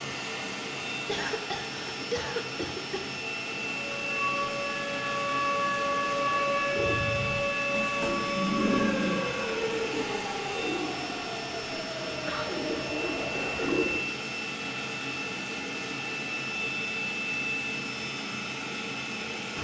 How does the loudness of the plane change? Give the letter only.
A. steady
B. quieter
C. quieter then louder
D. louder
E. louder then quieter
A.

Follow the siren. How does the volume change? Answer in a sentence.
The volume of the siren goes down.